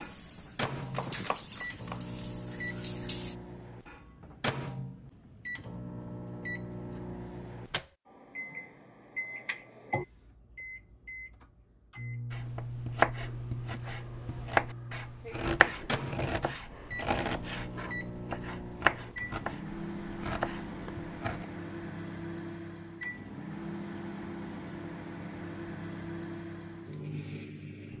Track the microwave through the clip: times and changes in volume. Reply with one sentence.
The microwave can be heard from 0.0 to 27.9 s, at a steady volume.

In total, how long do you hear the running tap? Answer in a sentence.
You can hear the running tap for 3 seconds altogether.